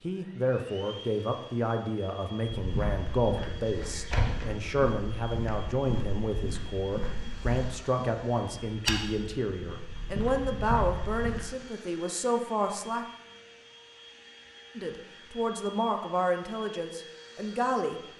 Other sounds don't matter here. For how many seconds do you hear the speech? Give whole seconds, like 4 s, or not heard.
16 s.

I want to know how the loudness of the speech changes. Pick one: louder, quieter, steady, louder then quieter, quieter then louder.
steady.